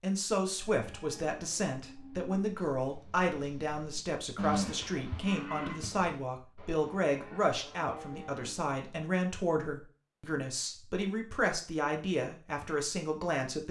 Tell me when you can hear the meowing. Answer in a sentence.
You can't hear the meowing here.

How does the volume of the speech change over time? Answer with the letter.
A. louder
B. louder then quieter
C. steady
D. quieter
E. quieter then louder
C.